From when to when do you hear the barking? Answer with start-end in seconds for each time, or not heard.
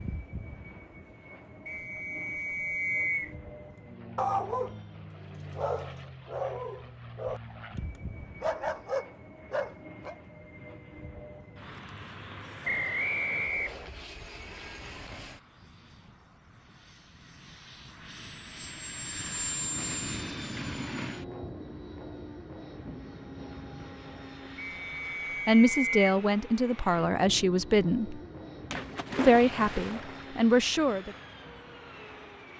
4.2-10.2.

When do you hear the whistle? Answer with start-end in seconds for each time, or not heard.
1.6-3.4, 12.7-13.9, 24.6-26.1.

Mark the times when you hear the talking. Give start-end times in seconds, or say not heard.
25.4-28.2, 29.1-31.1.